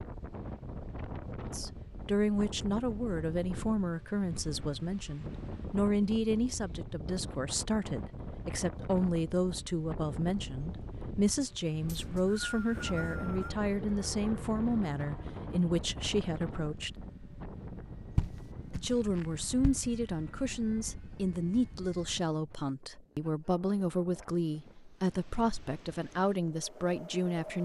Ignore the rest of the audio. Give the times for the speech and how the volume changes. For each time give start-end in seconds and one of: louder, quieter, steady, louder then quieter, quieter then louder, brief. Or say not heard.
1.5-16.9 steady
18.7-27.6 steady.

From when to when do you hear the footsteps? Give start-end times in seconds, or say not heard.
18.1-19.8.